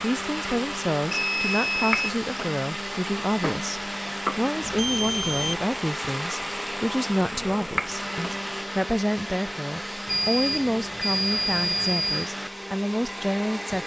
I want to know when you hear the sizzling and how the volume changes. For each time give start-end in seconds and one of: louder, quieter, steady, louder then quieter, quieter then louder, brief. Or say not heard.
0.0-8.7 steady.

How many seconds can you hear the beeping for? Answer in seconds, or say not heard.
4 s.